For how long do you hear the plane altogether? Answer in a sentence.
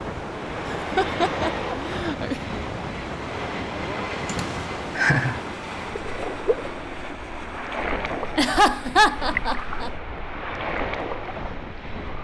The plane can be heard for 12 seconds in total.